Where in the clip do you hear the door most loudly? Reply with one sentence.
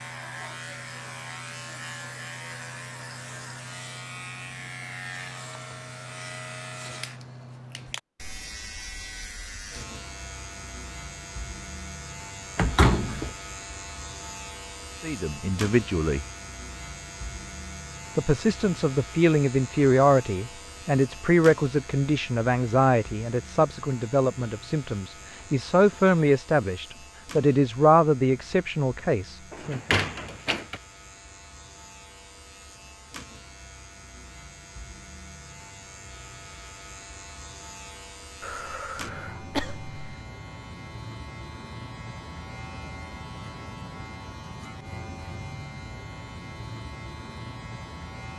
The volume of the door peaks at 13 seconds.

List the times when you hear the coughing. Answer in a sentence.
You can hear the coughing from 38.4 to 40.2 s.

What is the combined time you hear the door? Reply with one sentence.
The door can be heard for 2 seconds in total.